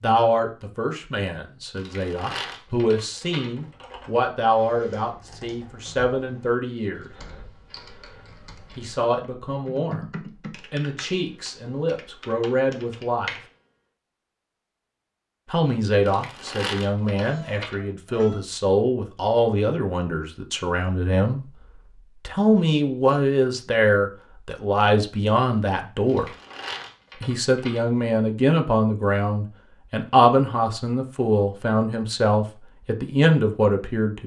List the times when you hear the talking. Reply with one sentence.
You can hear the talking from 0.0 to 7.1 s, from 8.8 to 13.3 s, from 15.4 to 21.4 s, from 22.2 to 26.4 s and from 27.2 to 34.2 s.